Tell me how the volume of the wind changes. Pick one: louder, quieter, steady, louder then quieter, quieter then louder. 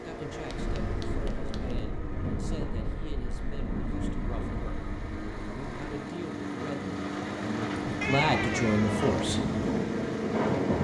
quieter then louder.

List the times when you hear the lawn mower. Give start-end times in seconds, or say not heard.
0.0-10.7.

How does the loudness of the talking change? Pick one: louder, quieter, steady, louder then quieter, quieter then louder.
louder.